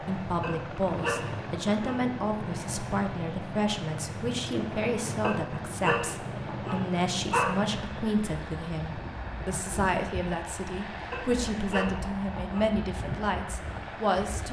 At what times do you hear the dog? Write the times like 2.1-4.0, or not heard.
0.4-2.0, 5.2-7.6, 11.1-12.8.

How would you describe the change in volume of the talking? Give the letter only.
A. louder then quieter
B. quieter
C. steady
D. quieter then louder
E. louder
C.